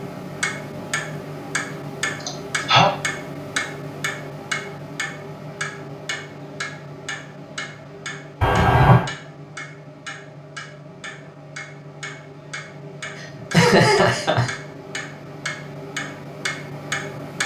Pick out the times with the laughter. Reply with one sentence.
The laughter can be heard from 2.2 to 3.0 s, from 8.4 to 9.1 s and from 13.2 to 14.5 s.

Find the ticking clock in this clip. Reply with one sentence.
You can hear the ticking clock from 0.0 to 17.4 s.